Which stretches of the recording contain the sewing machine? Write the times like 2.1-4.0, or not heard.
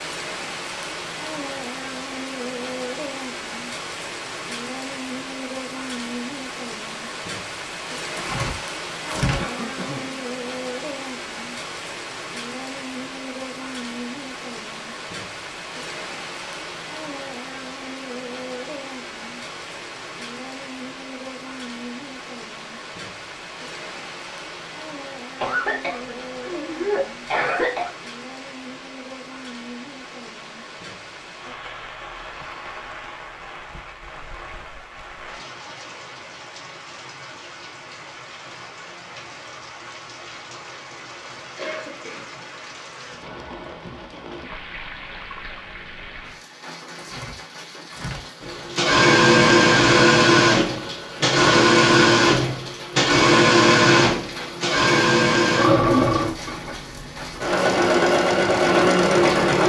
48.4-59.6.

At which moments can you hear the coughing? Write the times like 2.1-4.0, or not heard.
9.3-10.2, 25.4-27.9, 41.5-42.3.